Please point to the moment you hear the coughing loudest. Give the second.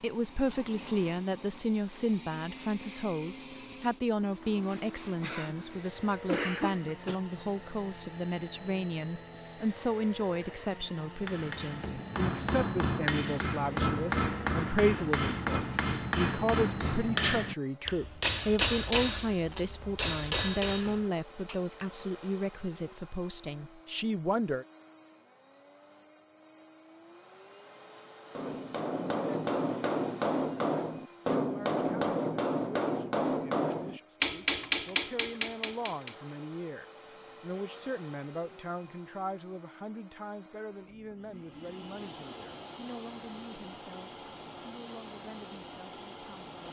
6 s.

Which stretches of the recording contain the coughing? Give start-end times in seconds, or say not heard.
5.2-7.2.